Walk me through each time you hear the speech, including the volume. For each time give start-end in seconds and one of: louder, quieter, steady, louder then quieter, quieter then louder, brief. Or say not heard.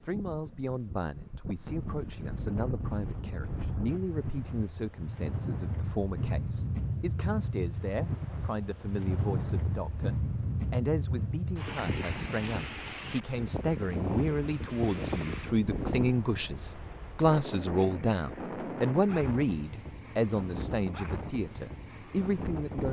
0.0-22.8 louder.